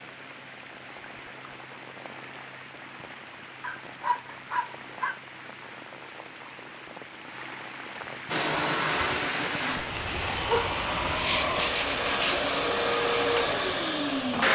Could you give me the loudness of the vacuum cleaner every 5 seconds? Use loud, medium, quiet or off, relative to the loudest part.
off, loud, loud.